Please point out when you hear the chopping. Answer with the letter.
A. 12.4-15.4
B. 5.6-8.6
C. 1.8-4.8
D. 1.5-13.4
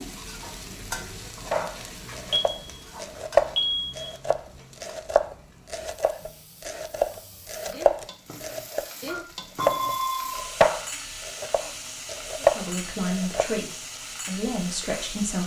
D.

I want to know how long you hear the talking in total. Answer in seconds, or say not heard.
3 s.